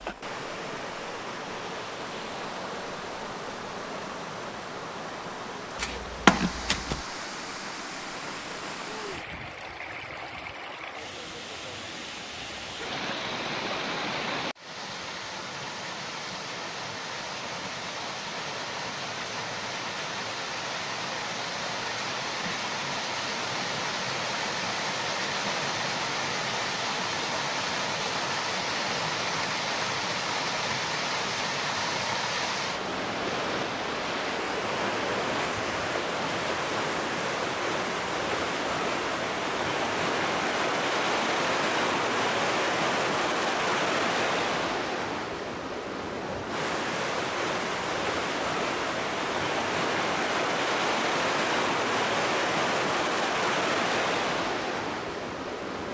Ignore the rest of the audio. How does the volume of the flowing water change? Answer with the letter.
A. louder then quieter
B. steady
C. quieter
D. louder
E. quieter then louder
D.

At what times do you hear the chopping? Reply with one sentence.
The chopping can be heard from 5.8 to 7.0 s.